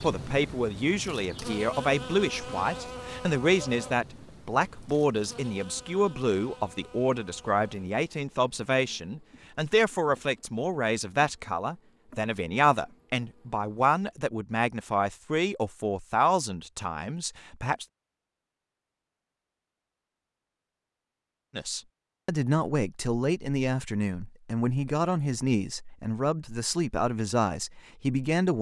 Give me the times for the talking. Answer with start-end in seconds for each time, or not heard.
0.0-17.9, 21.6-28.5.